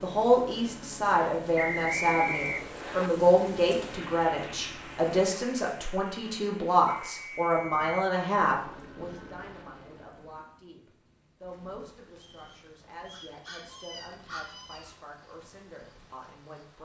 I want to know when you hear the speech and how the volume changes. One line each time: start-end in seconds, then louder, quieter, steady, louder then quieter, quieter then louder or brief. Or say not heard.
0.0-16.8 quieter.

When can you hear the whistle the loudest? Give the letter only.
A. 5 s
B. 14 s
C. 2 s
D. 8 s
C.